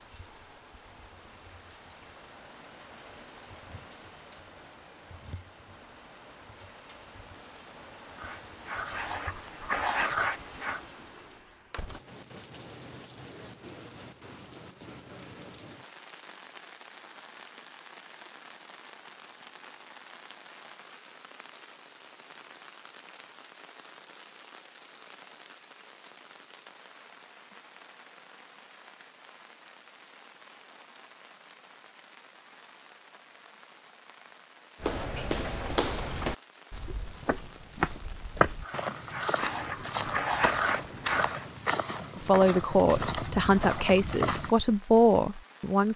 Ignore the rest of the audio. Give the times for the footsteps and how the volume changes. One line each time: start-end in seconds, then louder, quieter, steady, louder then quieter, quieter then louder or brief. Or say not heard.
34.8-44.5 steady.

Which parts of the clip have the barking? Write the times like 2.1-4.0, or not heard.
8.2-10.8, 38.6-41.5.